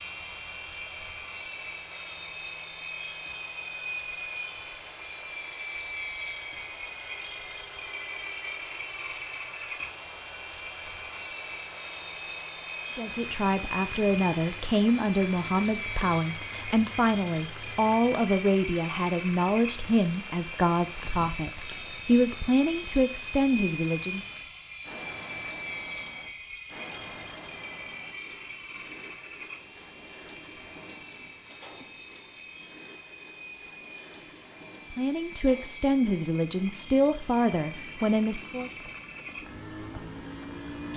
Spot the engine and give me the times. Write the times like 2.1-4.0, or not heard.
0.0-40.9.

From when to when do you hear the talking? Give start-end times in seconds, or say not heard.
12.9-24.4, 34.9-38.7.